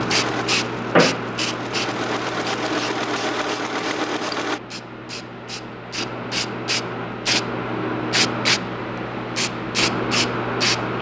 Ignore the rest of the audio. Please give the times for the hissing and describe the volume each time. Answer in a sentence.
The hissing can be heard from 0.0 to 10.9 s, getting quieter then louder.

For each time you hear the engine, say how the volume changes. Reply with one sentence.
You can hear the engine from 0.0 to 4.6 s, getting louder.